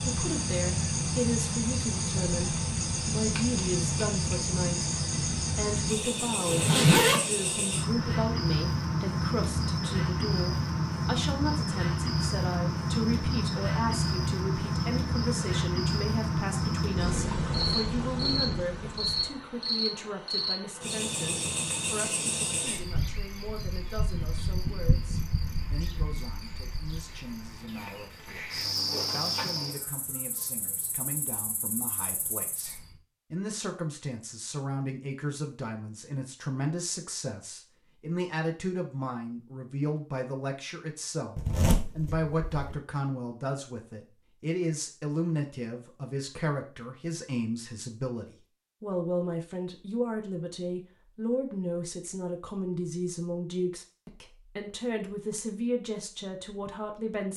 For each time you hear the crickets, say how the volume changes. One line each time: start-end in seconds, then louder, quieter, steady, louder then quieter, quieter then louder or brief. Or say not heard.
0.0-33.0 quieter.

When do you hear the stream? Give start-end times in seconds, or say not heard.
not heard.